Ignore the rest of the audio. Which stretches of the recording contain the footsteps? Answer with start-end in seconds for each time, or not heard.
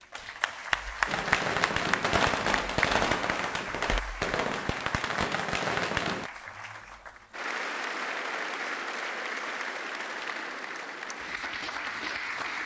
not heard.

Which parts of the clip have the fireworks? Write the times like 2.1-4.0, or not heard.
1.1-6.3.